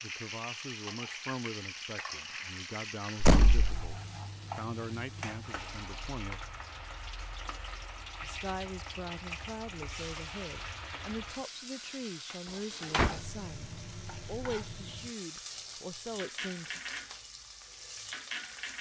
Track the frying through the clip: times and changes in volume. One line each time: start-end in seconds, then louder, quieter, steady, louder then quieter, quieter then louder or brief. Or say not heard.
0.0-18.7 steady.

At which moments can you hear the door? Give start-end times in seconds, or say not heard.
3.2-3.8, 12.4-13.2.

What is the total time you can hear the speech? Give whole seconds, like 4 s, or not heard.
15 s.